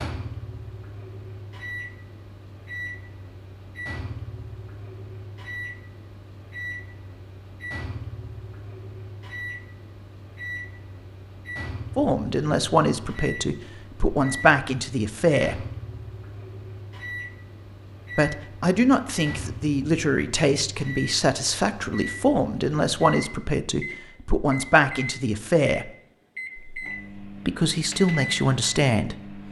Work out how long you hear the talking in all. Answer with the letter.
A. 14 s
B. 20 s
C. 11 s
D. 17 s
A.